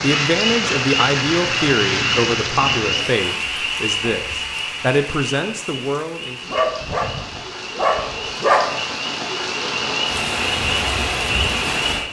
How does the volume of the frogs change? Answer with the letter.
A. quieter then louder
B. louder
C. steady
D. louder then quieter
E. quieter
A.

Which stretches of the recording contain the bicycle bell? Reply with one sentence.
You can't hear the bicycle bell here.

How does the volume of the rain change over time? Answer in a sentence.
The loudness of the rain goes down, then up.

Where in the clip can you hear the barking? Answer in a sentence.
The barking can be heard from 6.5 to 8.8 s.